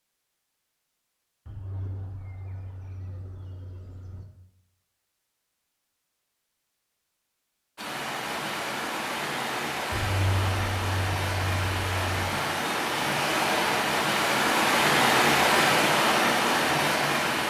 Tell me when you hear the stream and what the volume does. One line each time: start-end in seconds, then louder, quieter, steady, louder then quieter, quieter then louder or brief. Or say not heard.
7.8-17.4 louder.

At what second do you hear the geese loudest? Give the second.
10 s.